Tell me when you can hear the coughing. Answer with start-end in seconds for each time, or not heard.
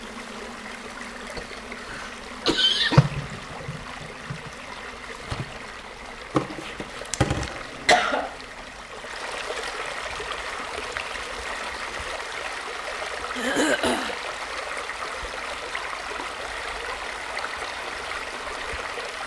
1.4-3.0, 7.5-8.3, 13.3-14.2.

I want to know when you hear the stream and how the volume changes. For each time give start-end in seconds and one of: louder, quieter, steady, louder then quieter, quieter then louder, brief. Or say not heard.
0.0-19.2 louder.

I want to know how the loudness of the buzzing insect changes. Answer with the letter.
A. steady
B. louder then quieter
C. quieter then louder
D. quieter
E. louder
B.